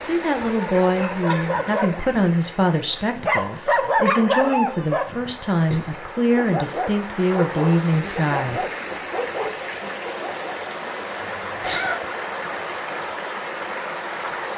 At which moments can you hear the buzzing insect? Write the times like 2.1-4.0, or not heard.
not heard.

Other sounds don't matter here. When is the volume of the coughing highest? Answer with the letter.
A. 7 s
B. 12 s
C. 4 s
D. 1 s
B.